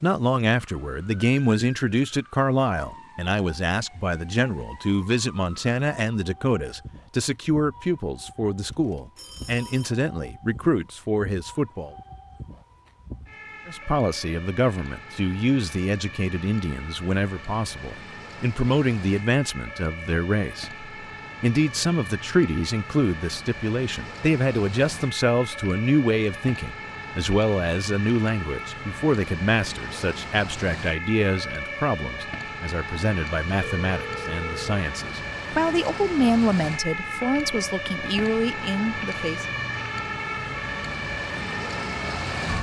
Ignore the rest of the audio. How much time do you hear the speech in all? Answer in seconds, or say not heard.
38 s.